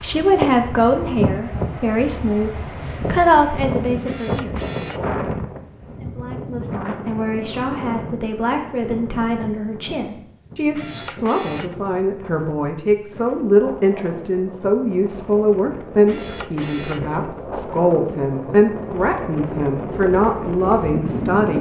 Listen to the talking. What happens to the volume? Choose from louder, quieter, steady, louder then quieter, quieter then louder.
quieter then louder.